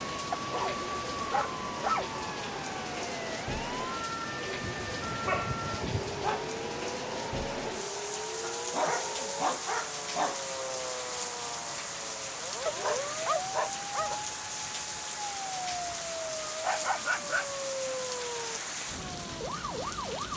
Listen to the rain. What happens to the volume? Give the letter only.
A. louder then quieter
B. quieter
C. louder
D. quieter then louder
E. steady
E.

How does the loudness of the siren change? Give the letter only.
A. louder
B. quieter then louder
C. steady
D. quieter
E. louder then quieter
C.